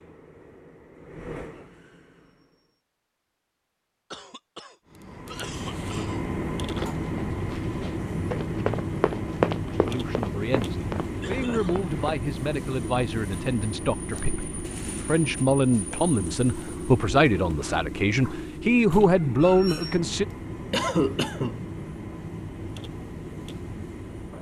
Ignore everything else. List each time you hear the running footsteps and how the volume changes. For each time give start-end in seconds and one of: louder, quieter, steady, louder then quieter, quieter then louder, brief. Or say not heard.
6.7-12.0 louder then quieter.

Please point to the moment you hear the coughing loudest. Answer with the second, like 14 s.
21 s.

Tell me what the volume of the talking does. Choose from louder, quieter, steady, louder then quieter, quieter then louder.
louder.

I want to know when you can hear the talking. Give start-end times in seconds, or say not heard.
9.8-20.2.